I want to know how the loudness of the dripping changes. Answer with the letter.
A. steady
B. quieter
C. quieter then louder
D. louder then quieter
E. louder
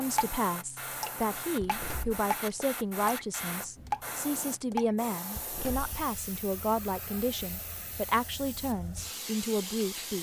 E.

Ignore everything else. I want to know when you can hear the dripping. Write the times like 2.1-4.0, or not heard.
0.0-5.0.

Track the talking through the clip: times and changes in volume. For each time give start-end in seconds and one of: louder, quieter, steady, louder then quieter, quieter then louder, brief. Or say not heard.
0.0-10.1 steady.